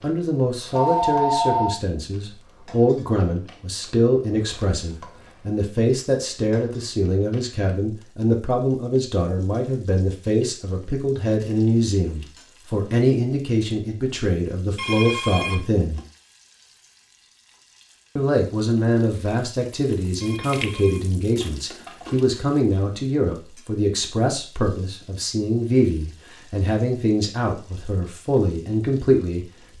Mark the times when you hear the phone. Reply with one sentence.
You can hear the phone from 0.7 to 1.8 s, from 14.8 to 16.0 s and from 20.2 to 22.2 s.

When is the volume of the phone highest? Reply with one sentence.
The volume of the phone peaks at 1 second.